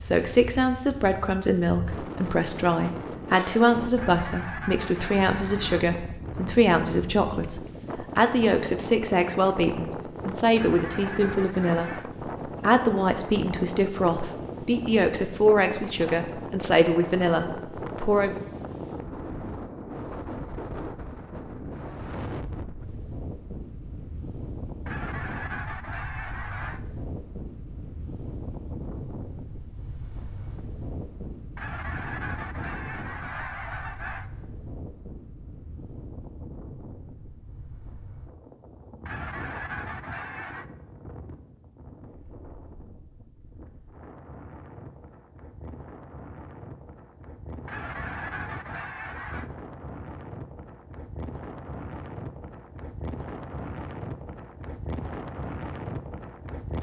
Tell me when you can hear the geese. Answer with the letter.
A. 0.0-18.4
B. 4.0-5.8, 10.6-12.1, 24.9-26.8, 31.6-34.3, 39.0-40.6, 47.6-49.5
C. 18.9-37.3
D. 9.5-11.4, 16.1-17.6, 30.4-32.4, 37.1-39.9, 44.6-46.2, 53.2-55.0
B.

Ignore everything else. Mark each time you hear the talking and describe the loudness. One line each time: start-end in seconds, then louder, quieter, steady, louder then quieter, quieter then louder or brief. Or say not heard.
0.0-18.4 steady.